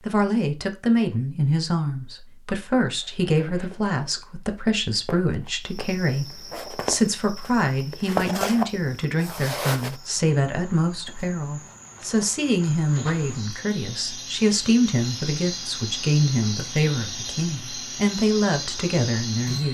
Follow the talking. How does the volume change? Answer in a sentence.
The loudness of the talking stays about the same.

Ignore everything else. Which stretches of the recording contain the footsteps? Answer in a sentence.
You can hear the footsteps from 2.8 to 9.9 s.